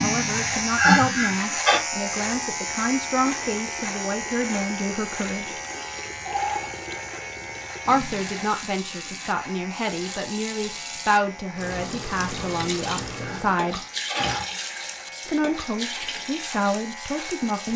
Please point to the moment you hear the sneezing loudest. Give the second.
1 s.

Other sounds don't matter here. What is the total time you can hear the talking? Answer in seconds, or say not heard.
14 s.